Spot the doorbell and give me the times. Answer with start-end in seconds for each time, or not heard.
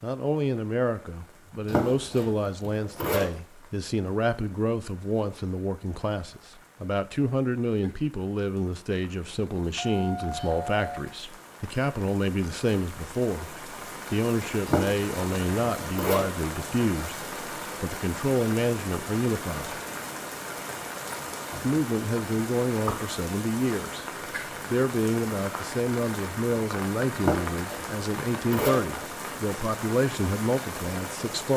9.8-11.1.